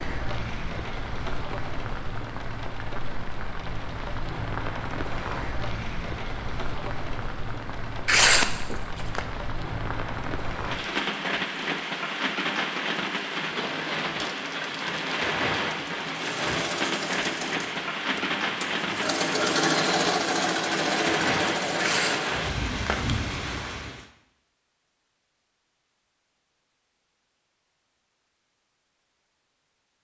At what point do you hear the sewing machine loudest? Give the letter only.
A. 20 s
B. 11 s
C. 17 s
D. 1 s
A.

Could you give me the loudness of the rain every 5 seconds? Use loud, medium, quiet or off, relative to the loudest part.
medium, medium, loud, loud, loud, off.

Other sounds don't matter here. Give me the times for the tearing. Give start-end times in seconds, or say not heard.
8.1-9.2, 21.8-23.2.